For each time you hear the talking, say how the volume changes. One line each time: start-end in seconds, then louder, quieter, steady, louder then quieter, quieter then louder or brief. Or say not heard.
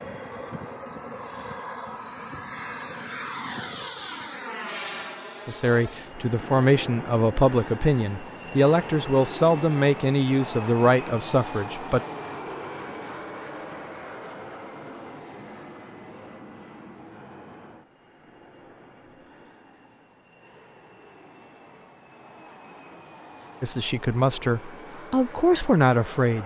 5.5-12.0 steady
23.6-26.4 brief.